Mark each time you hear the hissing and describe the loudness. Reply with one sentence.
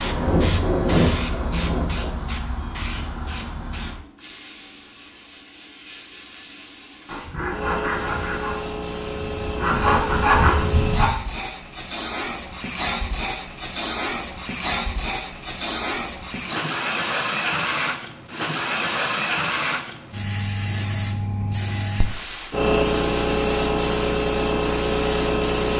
The hissing can be heard from 0.0 to 25.7 s, getting louder.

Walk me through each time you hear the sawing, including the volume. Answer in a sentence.
You can hear the sawing briefly from 0.0 to 2.1 s; and from 7.0 to 11.1 s, getting quieter then louder.